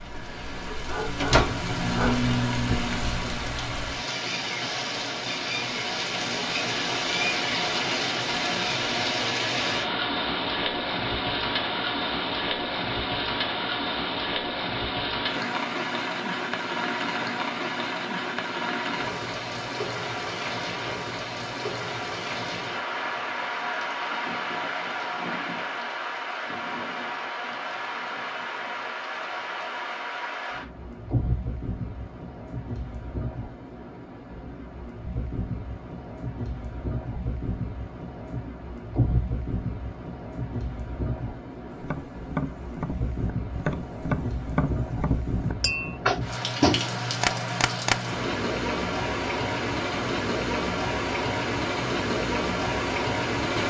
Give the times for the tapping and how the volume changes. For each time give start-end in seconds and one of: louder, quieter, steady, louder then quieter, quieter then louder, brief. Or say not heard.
41.8-48.0 louder.